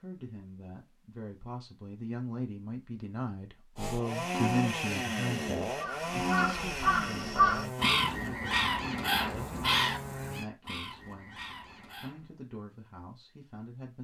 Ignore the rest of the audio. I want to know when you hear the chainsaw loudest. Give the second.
5 s.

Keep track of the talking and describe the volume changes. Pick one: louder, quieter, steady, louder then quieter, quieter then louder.
louder then quieter.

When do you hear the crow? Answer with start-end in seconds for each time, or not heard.
5.8-12.2.